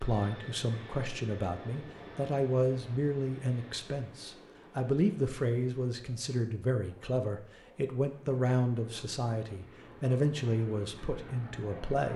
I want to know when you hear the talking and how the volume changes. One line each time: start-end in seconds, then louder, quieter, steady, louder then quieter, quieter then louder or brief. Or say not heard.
0.0-12.1 steady.